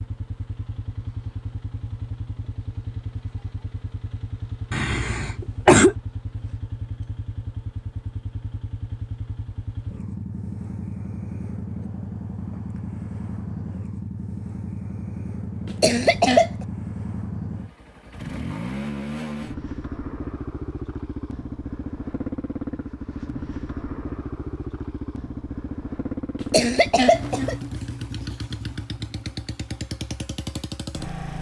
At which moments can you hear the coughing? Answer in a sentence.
You can hear the coughing from 4.7 to 6.0 s, from 15.7 to 16.5 s and from 26.4 to 27.6 s.